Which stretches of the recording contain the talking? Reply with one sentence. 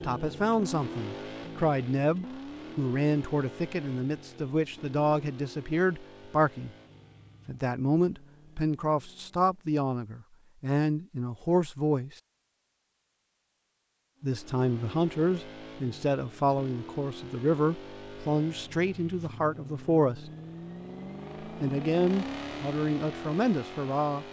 The talking can be heard from 0.0 to 6.7 s, from 7.5 to 12.2 s, from 14.2 to 20.3 s and from 21.4 to 24.2 s.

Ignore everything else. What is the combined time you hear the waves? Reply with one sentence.
You can't hear the waves here.